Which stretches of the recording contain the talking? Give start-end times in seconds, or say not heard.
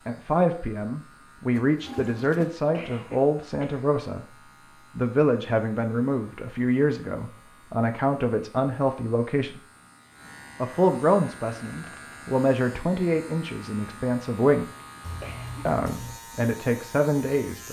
0.1-9.6, 10.6-14.7, 15.7-17.6.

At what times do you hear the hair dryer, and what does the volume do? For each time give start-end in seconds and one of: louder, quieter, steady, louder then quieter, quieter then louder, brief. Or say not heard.
not heard.